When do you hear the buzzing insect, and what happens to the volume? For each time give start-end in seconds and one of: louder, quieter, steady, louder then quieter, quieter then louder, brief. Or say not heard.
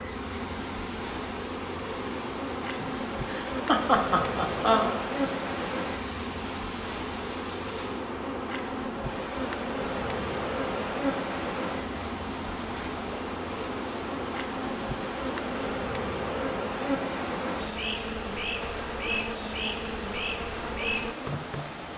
0.0-21.9 steady.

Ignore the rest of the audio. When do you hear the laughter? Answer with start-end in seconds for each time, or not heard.
2.6-5.0.